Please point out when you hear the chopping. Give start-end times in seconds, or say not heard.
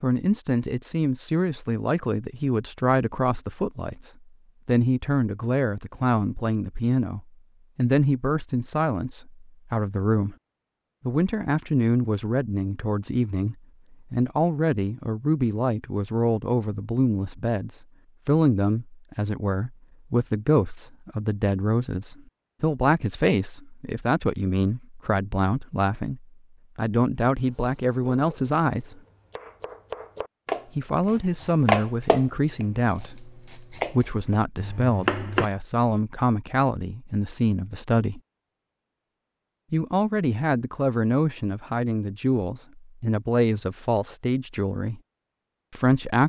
27.6-35.5.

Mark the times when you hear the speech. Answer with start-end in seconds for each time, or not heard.
0.0-10.3, 11.1-29.0, 30.8-38.2, 39.7-45.0, 45.7-46.2.